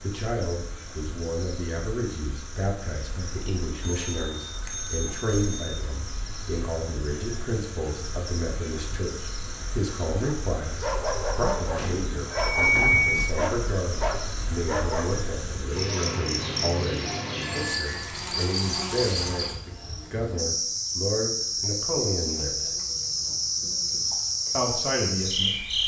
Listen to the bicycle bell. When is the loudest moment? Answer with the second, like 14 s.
13 s.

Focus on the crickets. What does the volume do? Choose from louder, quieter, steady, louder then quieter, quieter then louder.
louder.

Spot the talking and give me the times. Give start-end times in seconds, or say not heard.
0.0-22.7, 24.5-25.6.